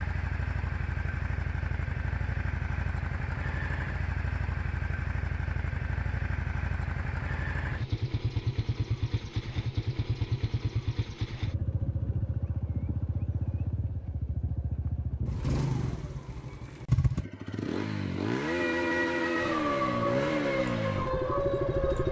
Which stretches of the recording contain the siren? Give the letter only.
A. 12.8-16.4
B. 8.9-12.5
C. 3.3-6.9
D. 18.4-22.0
D.